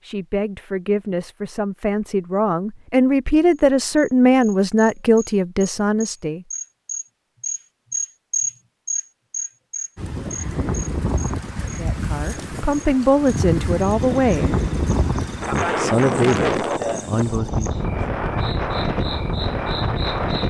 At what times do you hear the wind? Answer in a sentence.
You can hear the wind from 9.9 to 20.4 s.